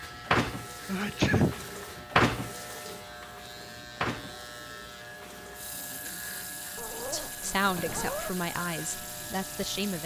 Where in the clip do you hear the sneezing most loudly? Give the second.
1 s.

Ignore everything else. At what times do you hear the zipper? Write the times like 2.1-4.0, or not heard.
6.8-8.3.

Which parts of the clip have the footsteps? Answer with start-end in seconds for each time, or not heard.
not heard.